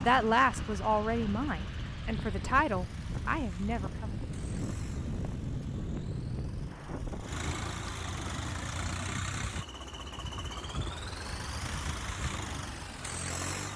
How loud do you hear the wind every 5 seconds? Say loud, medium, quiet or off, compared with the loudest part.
loud, loud, off.